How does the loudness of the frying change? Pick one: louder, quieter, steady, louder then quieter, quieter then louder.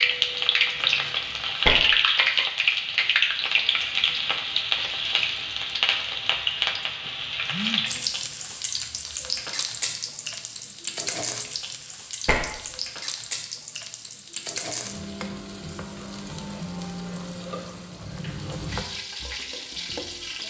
quieter.